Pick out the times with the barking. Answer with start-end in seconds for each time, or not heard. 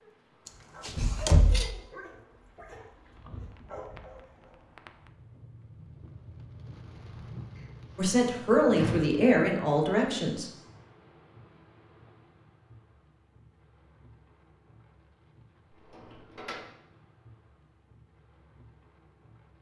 0.0-4.5.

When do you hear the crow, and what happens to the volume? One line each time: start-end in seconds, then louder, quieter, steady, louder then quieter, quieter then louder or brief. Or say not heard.
not heard.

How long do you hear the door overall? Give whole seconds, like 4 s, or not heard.
4 s.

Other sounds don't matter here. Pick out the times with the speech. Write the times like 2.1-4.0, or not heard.
8.0-10.5.